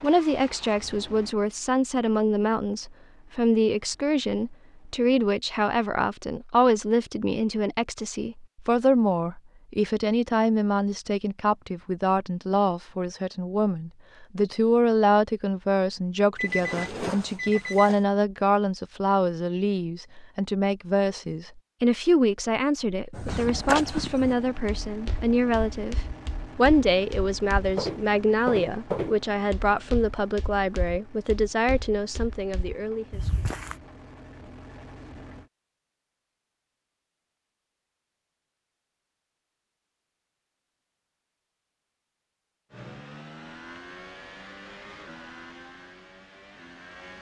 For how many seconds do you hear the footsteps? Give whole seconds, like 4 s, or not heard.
11 s.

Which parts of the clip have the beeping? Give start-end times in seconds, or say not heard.
16.4-18.0.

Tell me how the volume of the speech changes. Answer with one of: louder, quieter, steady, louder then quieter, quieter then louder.
steady.